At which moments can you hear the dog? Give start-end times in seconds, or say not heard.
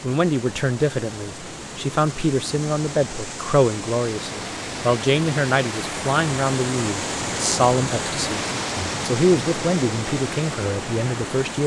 not heard.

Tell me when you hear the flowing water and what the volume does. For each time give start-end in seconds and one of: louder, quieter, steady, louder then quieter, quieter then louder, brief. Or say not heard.
0.0-11.6 louder.